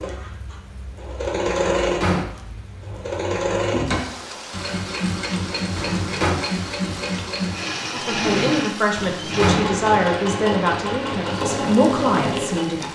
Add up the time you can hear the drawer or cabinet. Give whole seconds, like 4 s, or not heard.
2 s.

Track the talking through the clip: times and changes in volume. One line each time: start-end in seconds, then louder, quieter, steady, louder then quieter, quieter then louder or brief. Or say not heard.
7.9-12.9 quieter then louder.